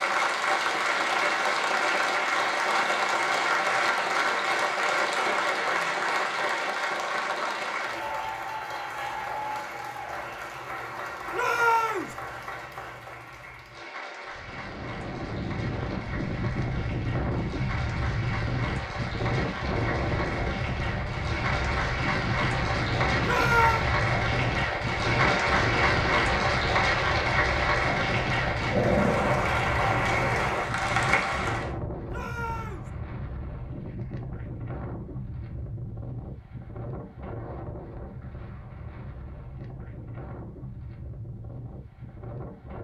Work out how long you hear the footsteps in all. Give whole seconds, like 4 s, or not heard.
not heard.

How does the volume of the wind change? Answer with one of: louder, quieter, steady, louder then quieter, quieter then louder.
quieter.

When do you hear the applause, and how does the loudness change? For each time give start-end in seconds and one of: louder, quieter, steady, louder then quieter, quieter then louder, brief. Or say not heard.
0.0-31.7 quieter then louder.